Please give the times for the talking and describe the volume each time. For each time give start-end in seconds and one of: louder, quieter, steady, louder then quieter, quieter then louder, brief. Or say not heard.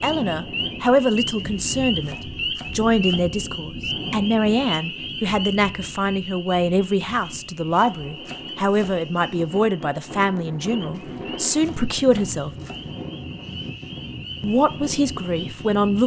0.0-12.5 steady
14.4-16.0 brief.